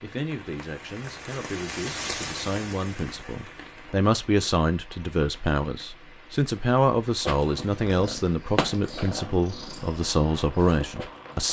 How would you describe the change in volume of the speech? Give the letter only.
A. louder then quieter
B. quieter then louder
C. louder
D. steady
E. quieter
C.